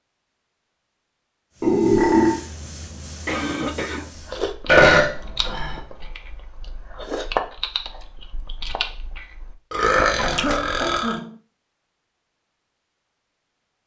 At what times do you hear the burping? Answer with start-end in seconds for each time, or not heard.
1.6-2.4, 4.7-5.8, 9.7-11.2.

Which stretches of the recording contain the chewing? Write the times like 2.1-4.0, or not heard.
4.2-10.9.